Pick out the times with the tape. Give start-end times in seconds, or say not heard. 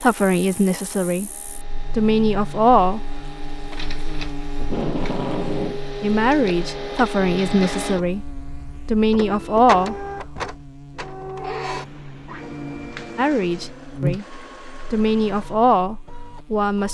4.5-5.8.